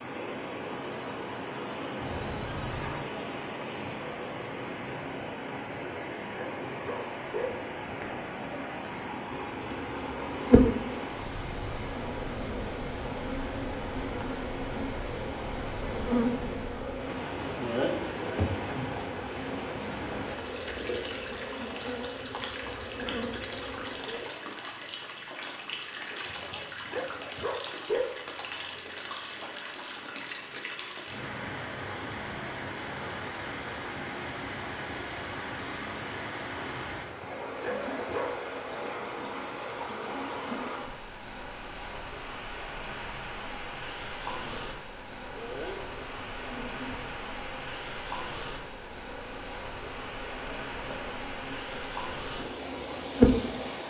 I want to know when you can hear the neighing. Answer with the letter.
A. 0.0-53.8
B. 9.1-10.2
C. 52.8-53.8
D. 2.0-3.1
D.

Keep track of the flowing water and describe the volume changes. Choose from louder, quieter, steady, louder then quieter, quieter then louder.
steady.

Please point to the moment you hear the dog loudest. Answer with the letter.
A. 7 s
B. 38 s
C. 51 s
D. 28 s
D.